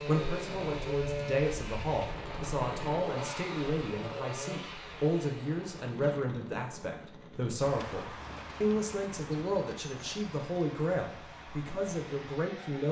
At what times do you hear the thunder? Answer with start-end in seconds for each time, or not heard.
not heard.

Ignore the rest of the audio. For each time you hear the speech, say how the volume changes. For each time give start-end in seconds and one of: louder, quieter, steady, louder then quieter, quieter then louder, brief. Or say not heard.
0.0-12.8 steady.